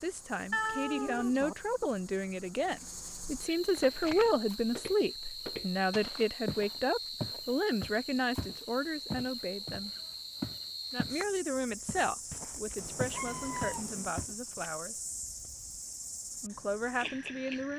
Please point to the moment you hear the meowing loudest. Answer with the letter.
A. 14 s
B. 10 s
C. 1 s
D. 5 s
C.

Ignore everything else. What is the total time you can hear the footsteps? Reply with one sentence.
You can hear the footsteps for 10 seconds altogether.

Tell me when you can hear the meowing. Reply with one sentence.
You can hear the meowing from 0.5 to 1.6 s and from 12.8 to 14.2 s.